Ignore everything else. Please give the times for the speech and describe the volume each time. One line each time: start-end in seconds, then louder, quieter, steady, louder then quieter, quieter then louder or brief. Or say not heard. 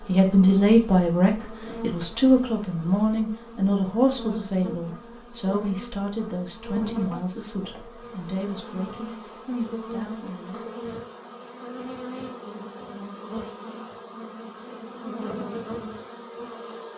0.1-10.8 quieter.